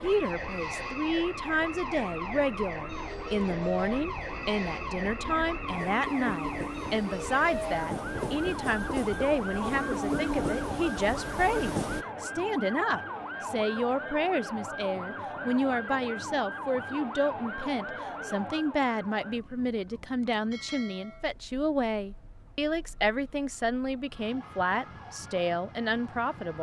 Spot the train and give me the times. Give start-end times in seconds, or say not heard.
0.0-12.1.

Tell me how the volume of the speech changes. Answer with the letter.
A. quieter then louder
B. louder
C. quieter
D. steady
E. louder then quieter
D.